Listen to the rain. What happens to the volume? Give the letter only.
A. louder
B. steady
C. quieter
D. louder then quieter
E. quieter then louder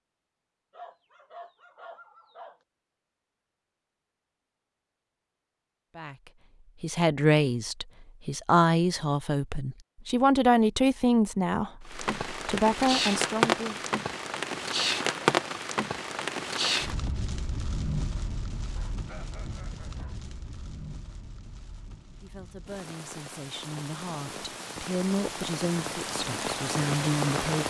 E.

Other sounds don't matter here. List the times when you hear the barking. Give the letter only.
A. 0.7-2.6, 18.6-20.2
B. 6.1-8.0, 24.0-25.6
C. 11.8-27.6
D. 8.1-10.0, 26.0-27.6
A.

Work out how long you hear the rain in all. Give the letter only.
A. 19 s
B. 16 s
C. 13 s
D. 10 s
B.